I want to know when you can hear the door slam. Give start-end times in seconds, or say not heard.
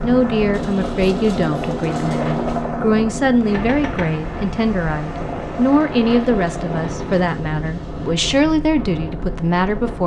not heard.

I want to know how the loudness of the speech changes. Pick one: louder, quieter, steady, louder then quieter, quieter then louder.
steady.